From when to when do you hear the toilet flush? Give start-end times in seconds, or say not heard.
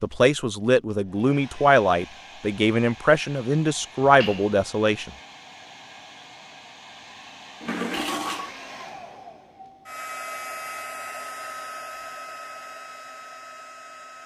4.0-4.5, 7.6-8.6.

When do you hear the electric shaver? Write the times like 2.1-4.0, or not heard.
not heard.